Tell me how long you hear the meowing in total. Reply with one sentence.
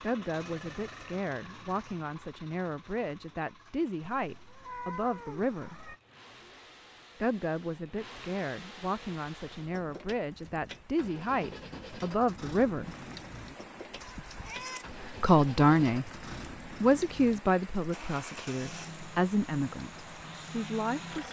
The meowing can be heard for 3 seconds in total.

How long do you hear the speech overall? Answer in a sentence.
The speech can be heard for 17 seconds in total.